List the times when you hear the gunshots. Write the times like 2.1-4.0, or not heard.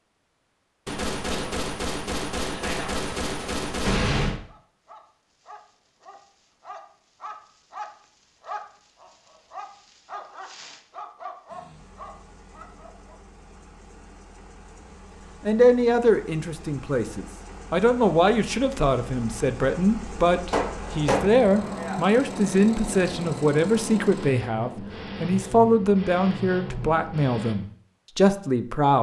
0.8-4.4, 20.5-22.1.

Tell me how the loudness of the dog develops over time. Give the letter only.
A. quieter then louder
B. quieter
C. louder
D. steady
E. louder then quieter
C.